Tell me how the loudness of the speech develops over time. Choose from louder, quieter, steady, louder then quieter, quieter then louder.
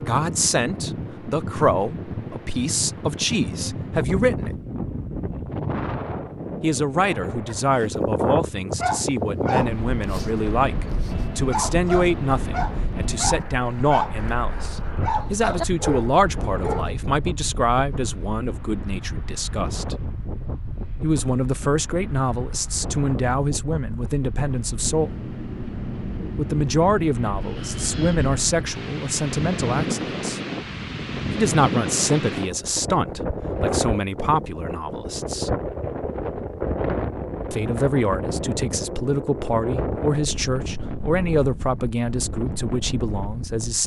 steady.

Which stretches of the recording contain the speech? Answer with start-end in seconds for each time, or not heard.
0.1-4.5, 6.6-19.9, 21.0-25.1, 26.4-30.4, 31.3-35.5, 37.5-43.8.